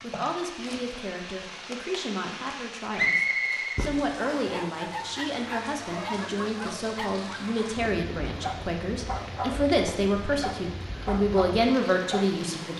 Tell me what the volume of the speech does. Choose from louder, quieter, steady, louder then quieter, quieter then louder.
louder.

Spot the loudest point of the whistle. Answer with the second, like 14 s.
3 s.